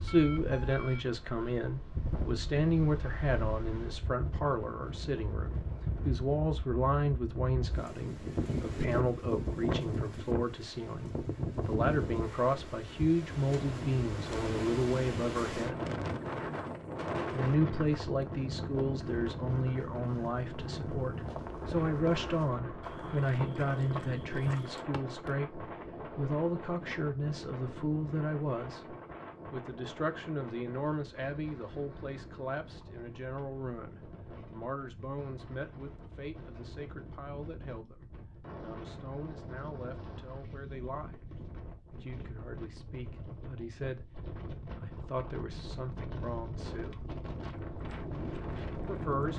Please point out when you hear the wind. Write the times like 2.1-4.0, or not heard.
0.0-49.3.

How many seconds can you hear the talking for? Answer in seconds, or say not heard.
45 s.